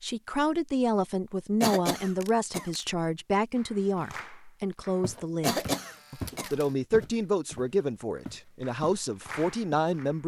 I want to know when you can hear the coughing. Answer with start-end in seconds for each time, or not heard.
1.6-2.7, 5.4-6.5.